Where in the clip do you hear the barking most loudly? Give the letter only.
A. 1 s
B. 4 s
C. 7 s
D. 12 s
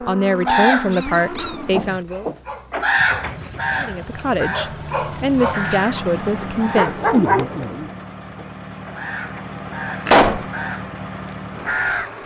C.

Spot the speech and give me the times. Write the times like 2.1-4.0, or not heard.
0.0-2.3, 3.8-7.1.